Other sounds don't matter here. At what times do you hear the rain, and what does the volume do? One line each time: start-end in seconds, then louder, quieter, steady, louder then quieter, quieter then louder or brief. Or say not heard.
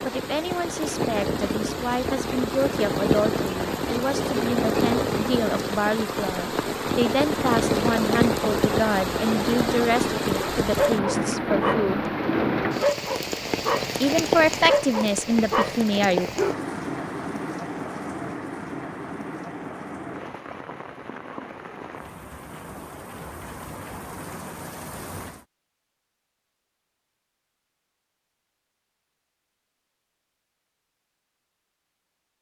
0.0-25.4 quieter.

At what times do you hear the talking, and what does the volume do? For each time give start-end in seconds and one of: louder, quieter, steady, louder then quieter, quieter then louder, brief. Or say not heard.
0.0-12.1 steady
14.0-16.3 brief.